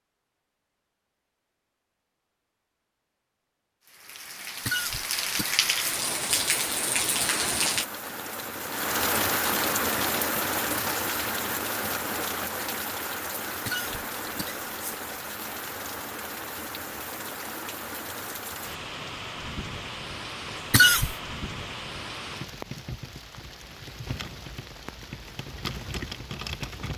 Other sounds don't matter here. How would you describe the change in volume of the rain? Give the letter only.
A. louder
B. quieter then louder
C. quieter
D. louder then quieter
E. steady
C.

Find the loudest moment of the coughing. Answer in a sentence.
The loudest moment of the coughing is at 21 seconds.